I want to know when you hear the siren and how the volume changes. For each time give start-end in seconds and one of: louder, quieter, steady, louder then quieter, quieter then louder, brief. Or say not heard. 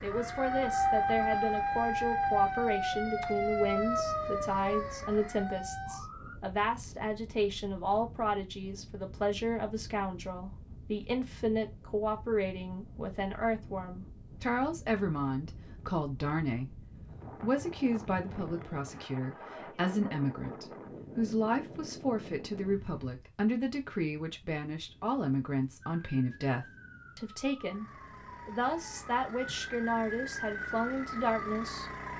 0.0-6.4 quieter
25.9-31.9 louder.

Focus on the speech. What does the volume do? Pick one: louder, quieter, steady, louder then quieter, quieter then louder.
steady.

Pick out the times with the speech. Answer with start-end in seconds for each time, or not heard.
0.0-16.8, 17.4-27.9, 28.4-31.9.